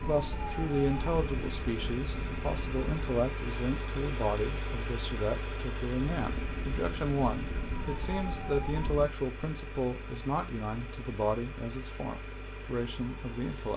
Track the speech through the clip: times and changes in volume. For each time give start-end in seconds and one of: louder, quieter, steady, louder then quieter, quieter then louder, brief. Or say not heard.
0.1-13.7 steady.